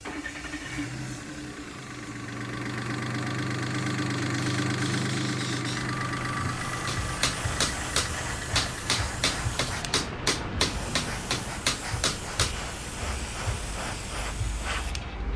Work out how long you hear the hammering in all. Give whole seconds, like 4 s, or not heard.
6 s.